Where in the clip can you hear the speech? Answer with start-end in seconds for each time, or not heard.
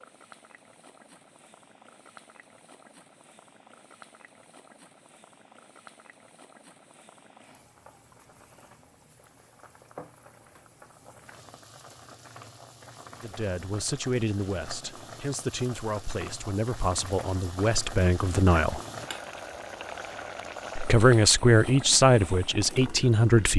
13.2-18.8, 20.8-23.5.